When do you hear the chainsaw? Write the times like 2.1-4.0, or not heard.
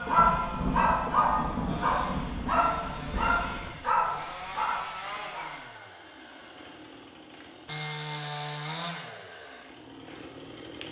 0.0-10.8.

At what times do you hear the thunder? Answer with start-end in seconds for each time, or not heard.
0.1-3.7.